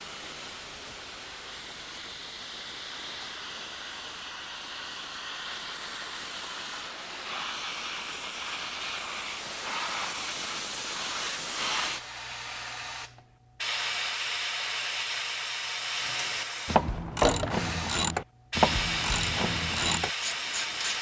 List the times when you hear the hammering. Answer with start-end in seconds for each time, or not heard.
not heard.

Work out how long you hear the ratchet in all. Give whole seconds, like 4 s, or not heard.
5 s.